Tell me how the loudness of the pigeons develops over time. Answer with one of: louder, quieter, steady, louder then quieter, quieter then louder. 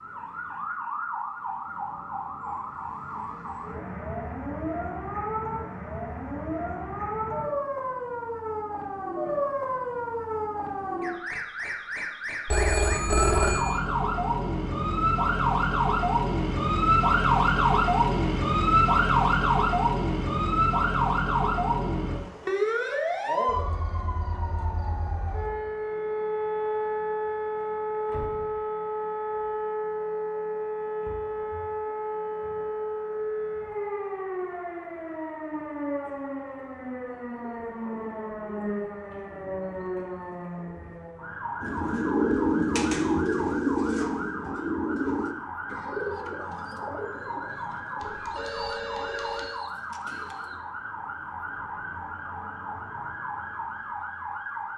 quieter.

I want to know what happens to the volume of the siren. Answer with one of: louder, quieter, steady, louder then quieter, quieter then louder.
louder then quieter.